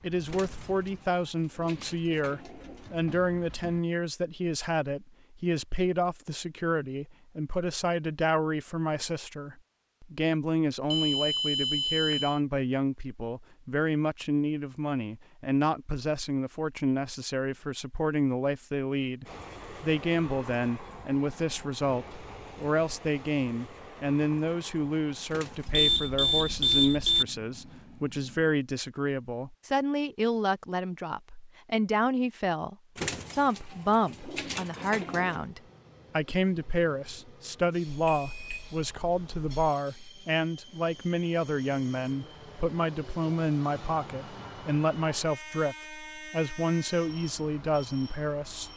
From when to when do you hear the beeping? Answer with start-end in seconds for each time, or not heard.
10.9-12.4, 25.7-27.2, 37.9-39.5.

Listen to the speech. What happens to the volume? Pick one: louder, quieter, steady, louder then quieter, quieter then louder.
steady.